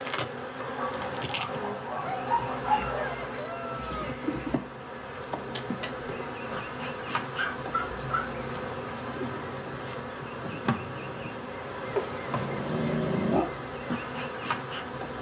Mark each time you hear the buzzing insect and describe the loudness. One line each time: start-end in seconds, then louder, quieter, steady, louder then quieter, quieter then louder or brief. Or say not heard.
0.0-15.1 steady.